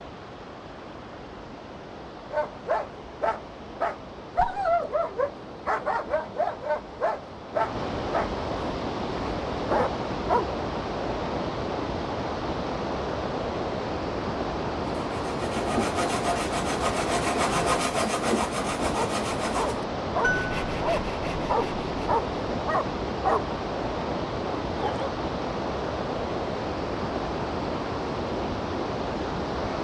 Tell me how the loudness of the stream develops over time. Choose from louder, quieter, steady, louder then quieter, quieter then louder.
louder.